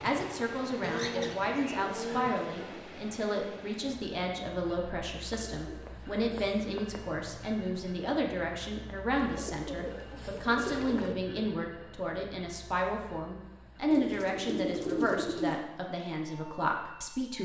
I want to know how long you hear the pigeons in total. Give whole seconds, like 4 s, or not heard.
8 s.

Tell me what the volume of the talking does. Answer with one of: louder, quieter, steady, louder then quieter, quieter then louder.
steady.